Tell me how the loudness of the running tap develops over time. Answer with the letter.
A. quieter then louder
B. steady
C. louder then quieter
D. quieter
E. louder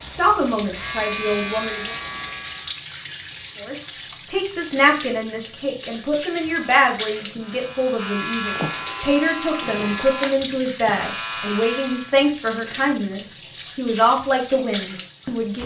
B.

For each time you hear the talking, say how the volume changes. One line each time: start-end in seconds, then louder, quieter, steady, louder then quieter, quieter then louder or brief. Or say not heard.
0.0-1.9 brief
3.6-15.6 steady.